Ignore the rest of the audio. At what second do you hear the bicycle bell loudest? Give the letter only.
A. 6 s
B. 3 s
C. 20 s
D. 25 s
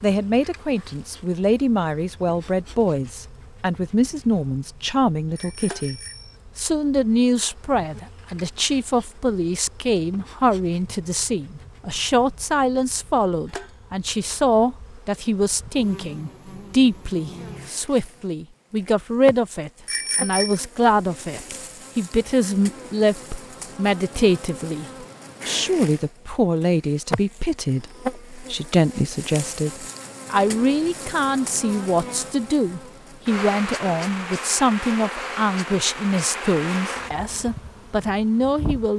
C.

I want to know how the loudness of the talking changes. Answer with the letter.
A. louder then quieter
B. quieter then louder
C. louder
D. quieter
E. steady
E.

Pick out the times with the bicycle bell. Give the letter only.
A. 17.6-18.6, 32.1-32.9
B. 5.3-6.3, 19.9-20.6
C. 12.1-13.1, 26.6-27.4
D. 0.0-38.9
B.